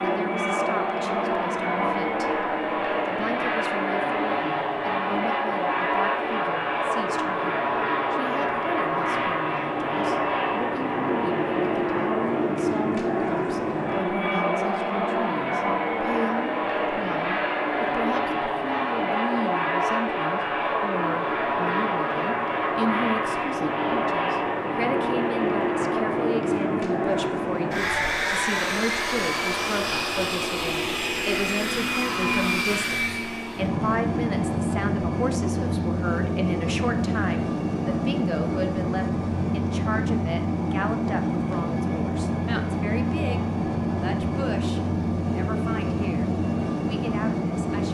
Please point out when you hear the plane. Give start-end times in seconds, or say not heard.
0.0-47.8.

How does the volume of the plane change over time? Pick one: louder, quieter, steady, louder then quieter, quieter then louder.
steady.